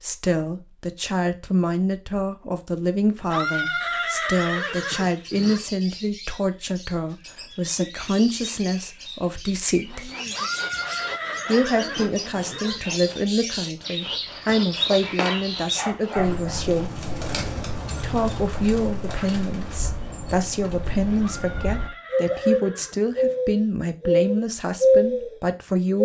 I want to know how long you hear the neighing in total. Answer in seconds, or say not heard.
7 s.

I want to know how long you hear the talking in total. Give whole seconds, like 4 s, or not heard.
24 s.